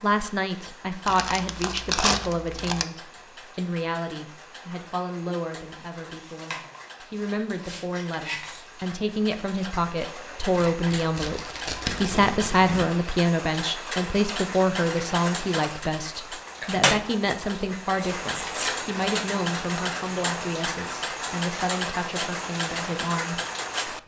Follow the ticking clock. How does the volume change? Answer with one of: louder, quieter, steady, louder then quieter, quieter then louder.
louder.